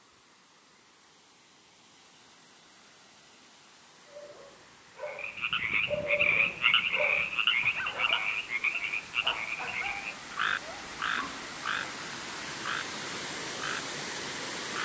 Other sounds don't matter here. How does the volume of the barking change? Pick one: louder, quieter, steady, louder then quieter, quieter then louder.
louder then quieter.